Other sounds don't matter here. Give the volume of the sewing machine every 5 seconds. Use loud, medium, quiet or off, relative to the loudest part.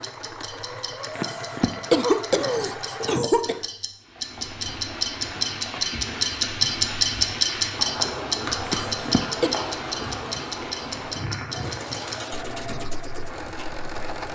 loud, off, loud.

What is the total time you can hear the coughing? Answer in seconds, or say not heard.
3 s.